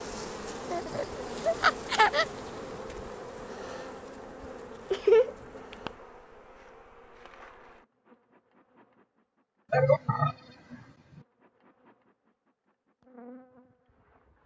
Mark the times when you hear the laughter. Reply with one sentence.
You can hear the laughter from 0.7 to 2.2 s, from 4.9 to 5.9 s and from 9.7 to 10.8 s.